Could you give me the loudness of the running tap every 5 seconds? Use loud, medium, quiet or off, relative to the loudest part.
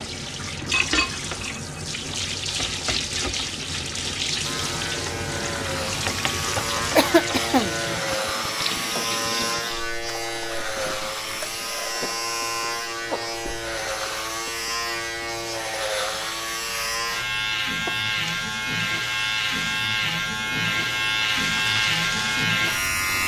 loud, loud, quiet, quiet, medium.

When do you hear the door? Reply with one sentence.
The door can't be heard in this clip.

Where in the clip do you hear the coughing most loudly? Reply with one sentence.
The loudest moment of the coughing is at 7 seconds.